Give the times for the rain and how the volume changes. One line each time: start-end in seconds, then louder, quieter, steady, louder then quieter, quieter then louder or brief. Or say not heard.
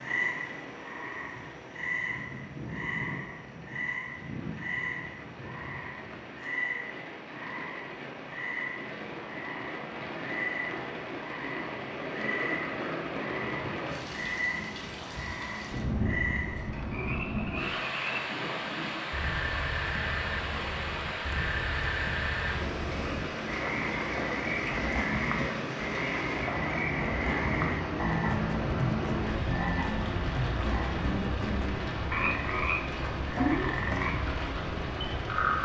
0.0-35.6 louder.